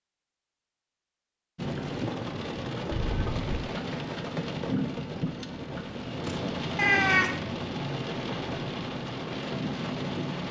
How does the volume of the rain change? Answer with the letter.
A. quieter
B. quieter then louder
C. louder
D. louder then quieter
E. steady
E.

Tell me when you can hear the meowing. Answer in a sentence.
You can hear the meowing from 2.9 to 3.7 s and from 6.8 to 7.4 s.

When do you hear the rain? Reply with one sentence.
You can hear the rain from 1.6 to 10.4 s.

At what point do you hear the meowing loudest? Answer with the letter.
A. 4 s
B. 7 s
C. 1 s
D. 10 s
B.